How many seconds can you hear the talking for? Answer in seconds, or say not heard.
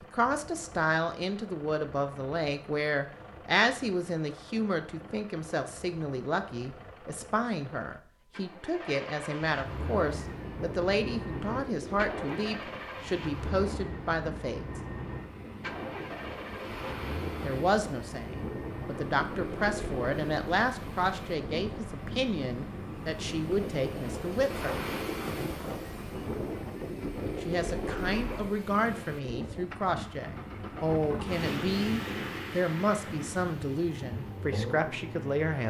30 s.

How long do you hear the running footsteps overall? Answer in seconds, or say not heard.
not heard.